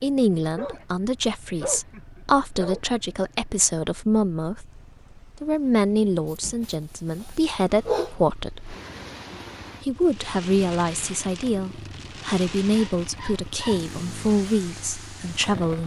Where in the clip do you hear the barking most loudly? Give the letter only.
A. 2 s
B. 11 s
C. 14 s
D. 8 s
D.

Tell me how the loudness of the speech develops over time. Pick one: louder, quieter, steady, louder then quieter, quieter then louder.
steady.